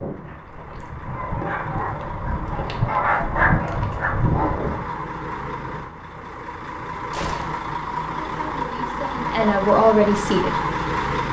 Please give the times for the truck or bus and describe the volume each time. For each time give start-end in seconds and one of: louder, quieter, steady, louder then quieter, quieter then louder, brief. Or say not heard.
0.0-11.2 louder.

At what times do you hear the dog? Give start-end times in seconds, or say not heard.
0.0-4.9.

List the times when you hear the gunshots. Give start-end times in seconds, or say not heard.
7.1-7.7.